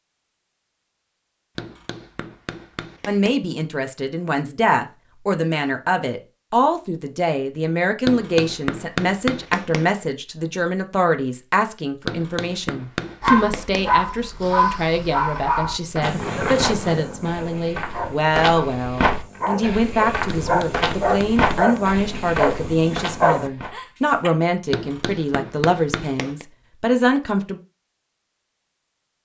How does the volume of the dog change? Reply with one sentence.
The loudness of the dog goes down, then up.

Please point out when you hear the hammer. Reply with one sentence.
You can hear the hammer from 1.6 to 3.4 s, from 8.1 to 9.8 s, from 12.1 to 13.8 s, from 20.4 to 21.9 s and from 24.7 to 26.4 s.